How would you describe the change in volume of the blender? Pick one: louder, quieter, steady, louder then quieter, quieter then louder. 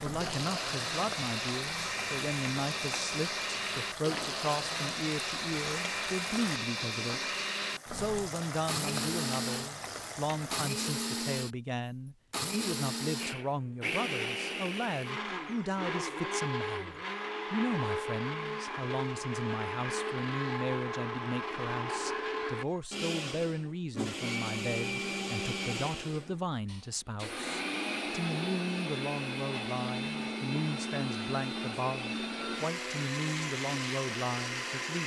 steady.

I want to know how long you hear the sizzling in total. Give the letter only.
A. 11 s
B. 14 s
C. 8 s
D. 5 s
A.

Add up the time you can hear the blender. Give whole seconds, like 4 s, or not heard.
35 s.